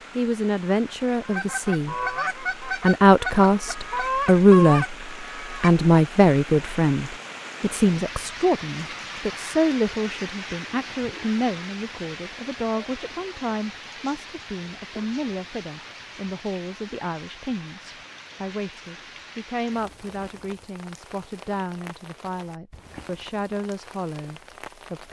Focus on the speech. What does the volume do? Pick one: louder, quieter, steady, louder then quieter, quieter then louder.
quieter.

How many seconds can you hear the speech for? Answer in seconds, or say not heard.
25 s.